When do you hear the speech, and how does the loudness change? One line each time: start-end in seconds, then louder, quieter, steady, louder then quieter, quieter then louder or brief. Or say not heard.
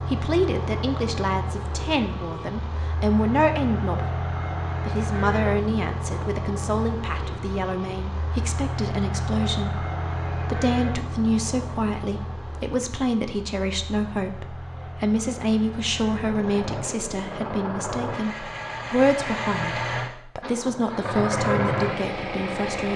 0.0-22.9 steady.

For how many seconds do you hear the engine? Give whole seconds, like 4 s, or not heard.
23 s.